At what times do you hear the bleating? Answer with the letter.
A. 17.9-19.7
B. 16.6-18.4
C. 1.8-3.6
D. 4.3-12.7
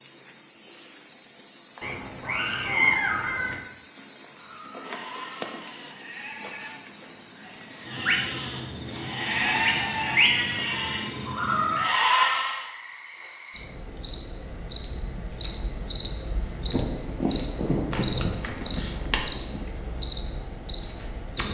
D.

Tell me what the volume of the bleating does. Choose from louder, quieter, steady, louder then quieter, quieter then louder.
louder.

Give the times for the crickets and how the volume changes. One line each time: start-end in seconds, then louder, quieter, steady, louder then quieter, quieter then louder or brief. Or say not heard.
0.0-21.4 louder.